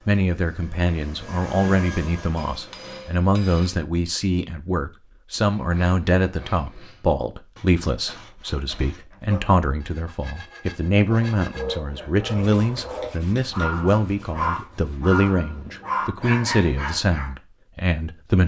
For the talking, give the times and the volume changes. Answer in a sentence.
The talking can be heard from 0.1 to 18.4 s, at a steady volume.